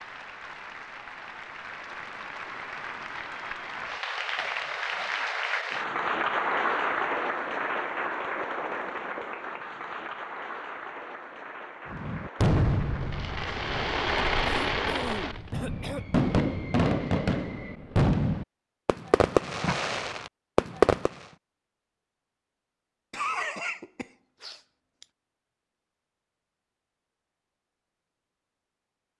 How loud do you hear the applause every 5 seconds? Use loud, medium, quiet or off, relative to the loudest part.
medium, loud, medium, off, off, off.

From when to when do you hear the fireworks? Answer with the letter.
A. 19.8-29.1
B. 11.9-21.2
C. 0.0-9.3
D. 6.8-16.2
B.